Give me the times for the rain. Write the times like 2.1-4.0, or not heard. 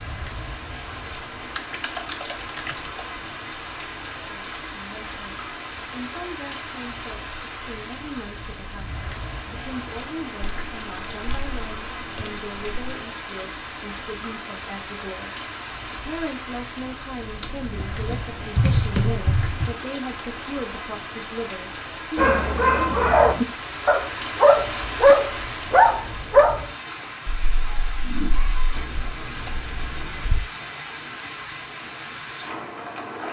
0.0-33.2.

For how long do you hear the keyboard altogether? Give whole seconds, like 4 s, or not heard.
8 s.